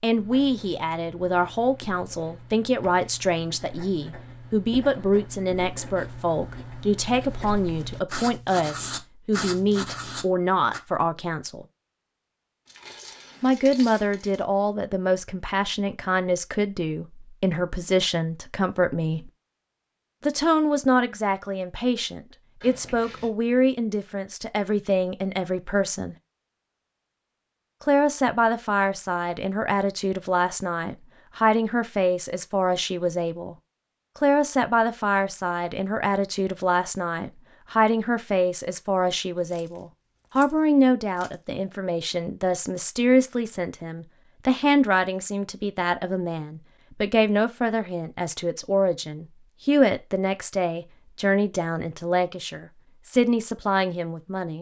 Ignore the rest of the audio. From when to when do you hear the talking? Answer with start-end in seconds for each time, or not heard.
0.0-11.7, 13.4-19.3, 20.2-26.1, 27.8-33.5, 34.1-54.5.